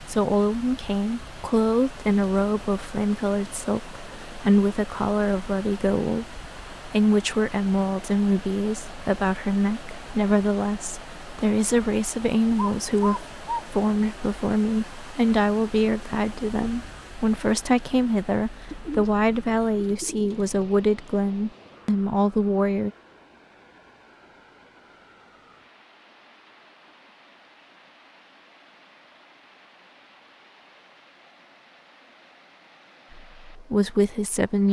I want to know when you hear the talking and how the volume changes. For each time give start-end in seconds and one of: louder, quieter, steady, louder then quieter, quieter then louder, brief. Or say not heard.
0.0-22.9 steady
33.1-34.6 brief.